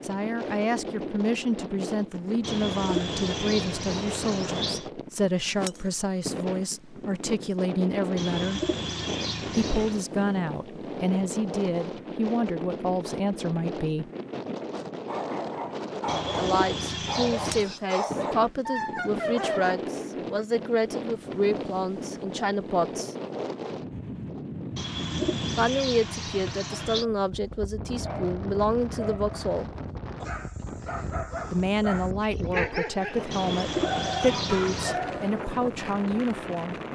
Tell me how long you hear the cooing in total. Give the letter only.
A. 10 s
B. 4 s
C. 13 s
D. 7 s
A.